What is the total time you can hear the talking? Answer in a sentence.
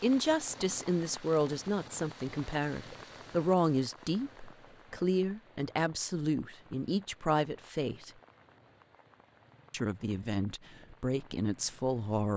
You can hear the talking for 11 seconds altogether.